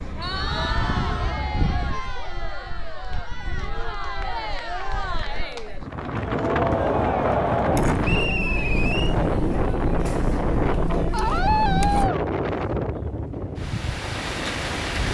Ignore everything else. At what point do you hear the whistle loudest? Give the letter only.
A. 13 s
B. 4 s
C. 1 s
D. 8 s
D.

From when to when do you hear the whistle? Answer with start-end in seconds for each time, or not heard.
0.2-0.7, 8.0-9.2.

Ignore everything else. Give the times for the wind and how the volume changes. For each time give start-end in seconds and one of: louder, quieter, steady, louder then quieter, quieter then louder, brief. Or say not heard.
0.0-15.0 quieter then louder.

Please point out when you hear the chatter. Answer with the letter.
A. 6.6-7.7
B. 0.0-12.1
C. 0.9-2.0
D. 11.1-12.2
B.